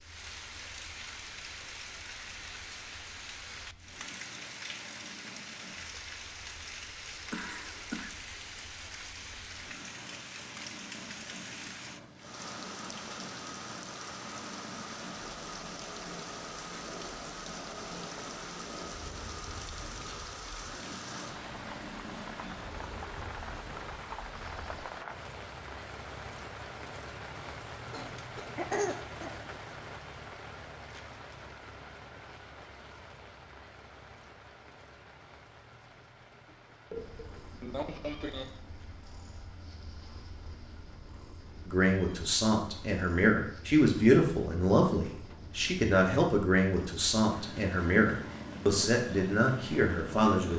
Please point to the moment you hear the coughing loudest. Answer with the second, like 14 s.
29 s.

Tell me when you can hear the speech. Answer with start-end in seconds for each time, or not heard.
41.6-50.5.